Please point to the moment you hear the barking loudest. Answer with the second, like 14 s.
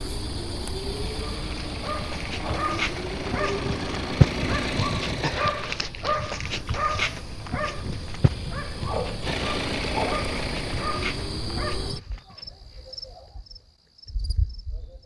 4 s.